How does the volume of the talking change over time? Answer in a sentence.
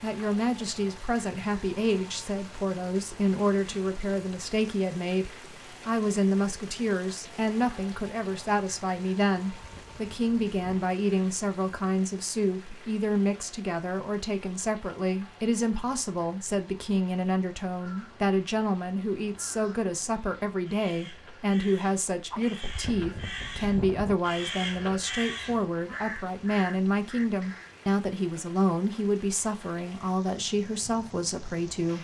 The loudness of the talking stays about the same.